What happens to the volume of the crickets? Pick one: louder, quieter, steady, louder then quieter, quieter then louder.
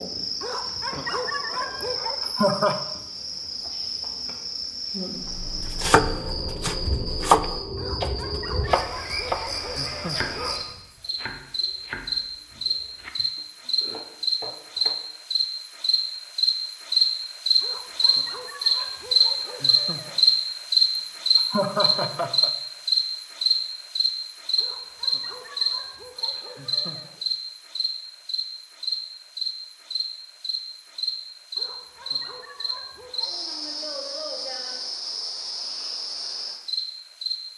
louder then quieter.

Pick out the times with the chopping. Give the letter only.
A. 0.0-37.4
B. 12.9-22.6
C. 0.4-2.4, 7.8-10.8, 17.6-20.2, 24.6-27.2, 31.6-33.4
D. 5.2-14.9
D.